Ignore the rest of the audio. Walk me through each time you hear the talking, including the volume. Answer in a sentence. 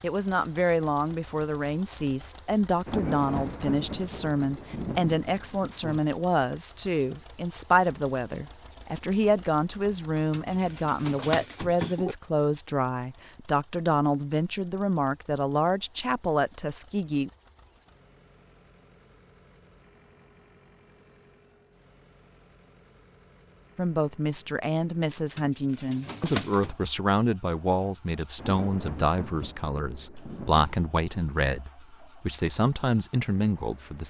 You can hear the talking from 0.0 to 17.3 s, at a steady volume; and from 23.8 to 34.0 s, at a steady volume.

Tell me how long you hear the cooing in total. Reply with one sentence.
You can hear the cooing for 3 seconds altogether.